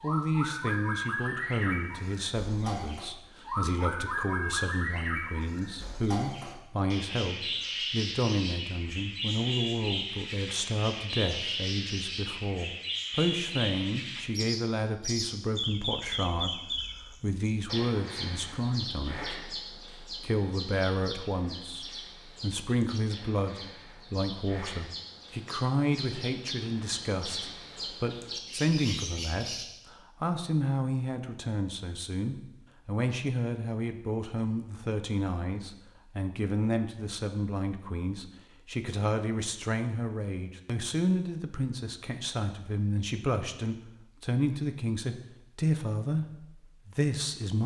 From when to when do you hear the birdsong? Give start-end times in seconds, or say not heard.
0.0-29.6.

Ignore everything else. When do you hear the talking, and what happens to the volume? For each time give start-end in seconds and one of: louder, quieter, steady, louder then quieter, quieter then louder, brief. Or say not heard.
0.0-47.6 steady.